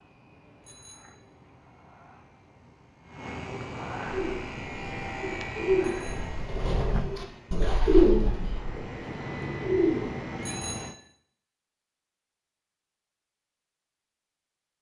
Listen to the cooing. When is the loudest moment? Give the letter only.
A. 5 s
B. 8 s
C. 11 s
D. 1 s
B.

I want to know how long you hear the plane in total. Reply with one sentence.
You can hear the plane for 11 seconds altogether.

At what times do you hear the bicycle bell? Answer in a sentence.
You can hear the bicycle bell from 0.7 to 1.2 s, from 5.8 to 6.4 s and from 10.4 to 11.0 s.